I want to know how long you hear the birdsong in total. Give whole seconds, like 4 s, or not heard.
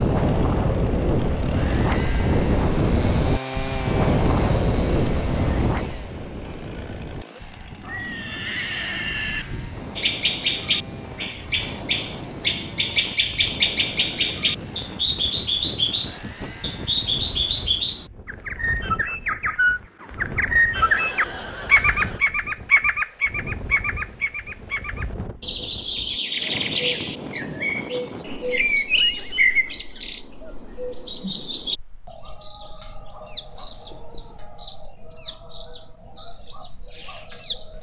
28 s.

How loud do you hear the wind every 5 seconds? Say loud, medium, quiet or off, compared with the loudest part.
loud, medium, quiet, quiet, quiet, quiet, quiet, quiet.